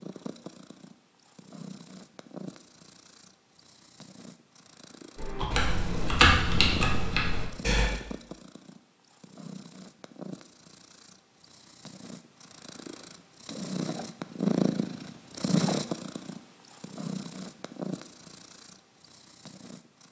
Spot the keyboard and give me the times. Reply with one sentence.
You can hear the keyboard from 5.2 to 7.9 s.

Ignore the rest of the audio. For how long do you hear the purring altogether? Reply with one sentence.
The purring can be heard for 20 seconds in total.